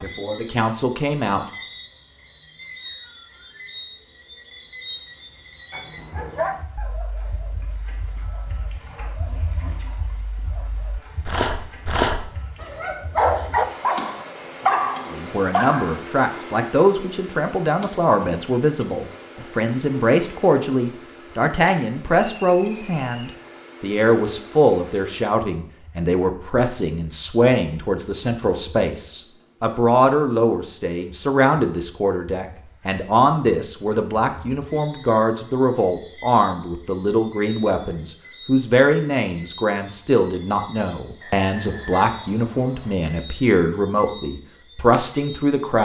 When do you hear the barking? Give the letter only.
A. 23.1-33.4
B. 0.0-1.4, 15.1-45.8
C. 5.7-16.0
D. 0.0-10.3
C.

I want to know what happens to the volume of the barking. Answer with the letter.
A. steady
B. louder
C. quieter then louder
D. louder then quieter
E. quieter
C.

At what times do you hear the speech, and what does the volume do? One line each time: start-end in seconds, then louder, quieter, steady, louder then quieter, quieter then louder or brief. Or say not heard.
0.0-1.4 brief
15.1-45.8 steady.